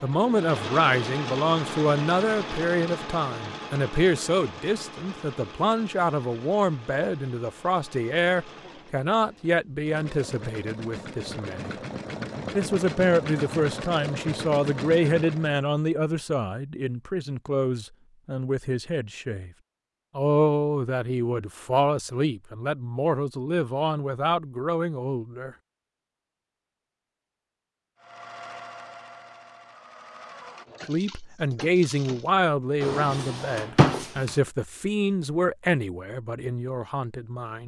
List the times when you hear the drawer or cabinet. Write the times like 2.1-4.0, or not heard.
32.8-34.4.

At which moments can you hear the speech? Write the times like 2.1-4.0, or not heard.
0.0-11.8, 12.5-19.5, 20.1-25.6, 30.9-37.6.